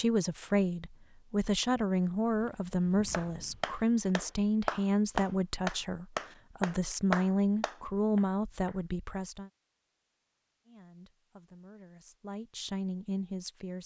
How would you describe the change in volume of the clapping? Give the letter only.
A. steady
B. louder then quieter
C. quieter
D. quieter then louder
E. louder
B.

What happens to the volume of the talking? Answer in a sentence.
The volume of the talking goes down.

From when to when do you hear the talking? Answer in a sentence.
The talking can be heard from 0.0 to 9.5 s and from 10.7 to 13.8 s.